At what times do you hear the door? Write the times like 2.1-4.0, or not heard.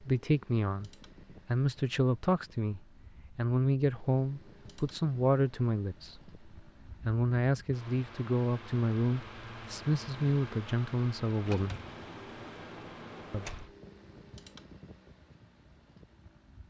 11.4-13.8.